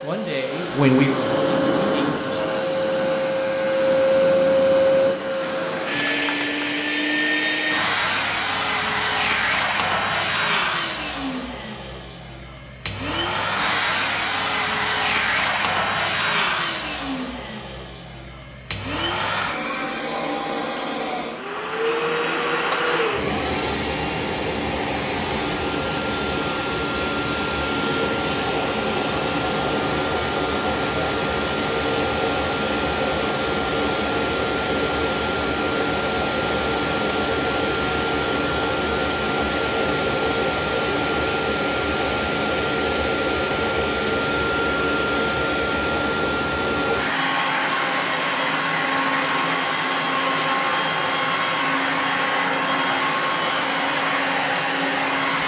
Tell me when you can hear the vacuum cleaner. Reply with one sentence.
You can hear the vacuum cleaner from 0.0 to 55.4 s.